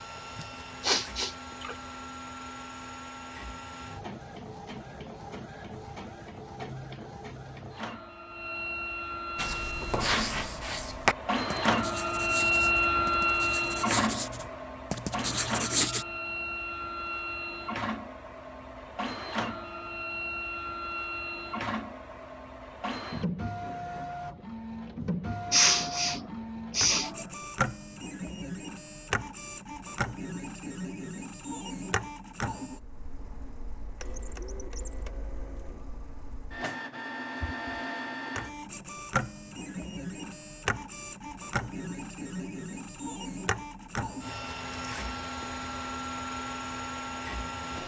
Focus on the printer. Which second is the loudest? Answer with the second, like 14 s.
13 s.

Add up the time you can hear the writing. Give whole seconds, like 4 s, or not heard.
7 s.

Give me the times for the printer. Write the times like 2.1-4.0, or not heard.
0.0-47.8.